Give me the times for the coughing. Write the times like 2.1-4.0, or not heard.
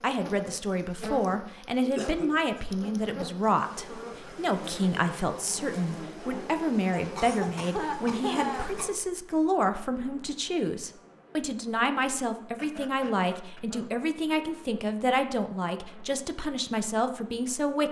1.8-2.6, 6.9-8.9, 12.6-13.9.